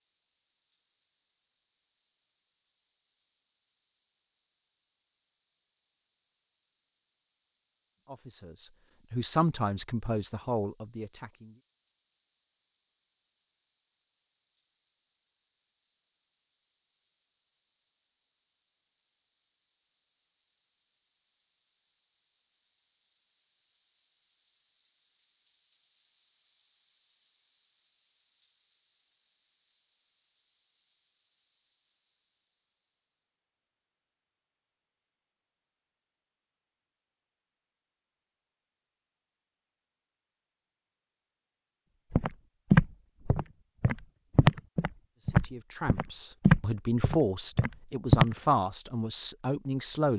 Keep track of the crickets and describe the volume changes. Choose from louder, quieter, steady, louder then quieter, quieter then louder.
louder.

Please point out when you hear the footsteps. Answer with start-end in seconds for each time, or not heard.
42.1-48.4.